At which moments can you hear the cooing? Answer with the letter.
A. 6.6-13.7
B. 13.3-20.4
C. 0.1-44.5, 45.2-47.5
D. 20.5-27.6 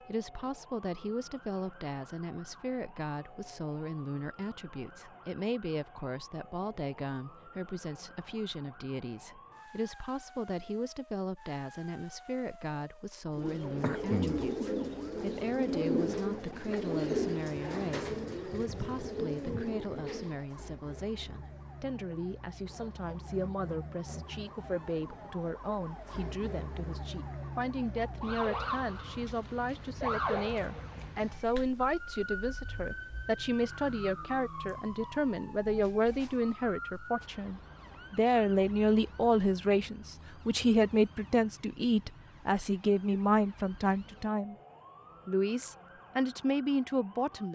B.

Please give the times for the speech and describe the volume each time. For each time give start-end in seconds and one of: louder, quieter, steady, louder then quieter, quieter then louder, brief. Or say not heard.
0.1-44.5 louder
45.2-47.5 brief.